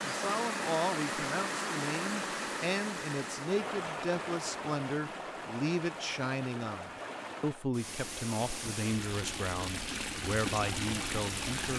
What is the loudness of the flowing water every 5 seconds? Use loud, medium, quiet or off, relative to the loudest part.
loud, medium, loud.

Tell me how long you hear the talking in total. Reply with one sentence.
You can hear the talking for 12 seconds altogether.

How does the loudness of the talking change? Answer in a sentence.
The volume of the talking stays about the same.